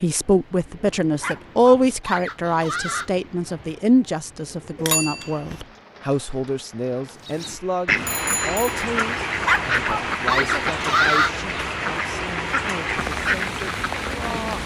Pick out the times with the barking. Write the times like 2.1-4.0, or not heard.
1.1-3.1, 9.4-11.3.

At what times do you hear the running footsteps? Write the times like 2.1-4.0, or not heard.
not heard.